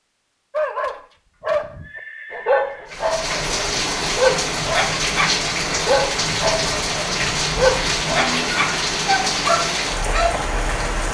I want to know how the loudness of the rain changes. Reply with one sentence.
The volume of the rain stays about the same.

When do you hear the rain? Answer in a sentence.
You can hear the rain from 2.9 to 11.0 s.